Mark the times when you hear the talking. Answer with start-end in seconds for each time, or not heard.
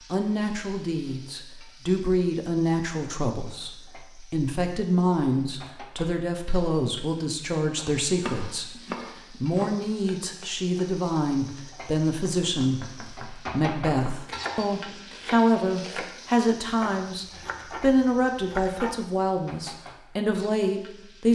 0.1-21.2.